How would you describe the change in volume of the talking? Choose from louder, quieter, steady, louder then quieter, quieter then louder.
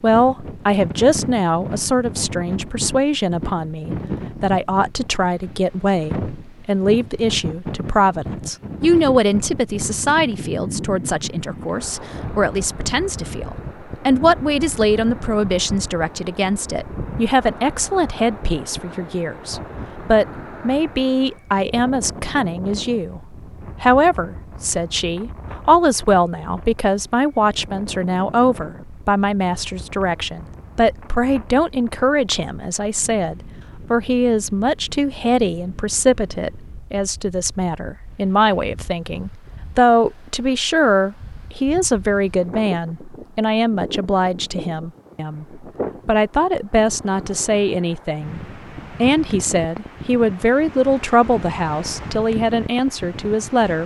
steady.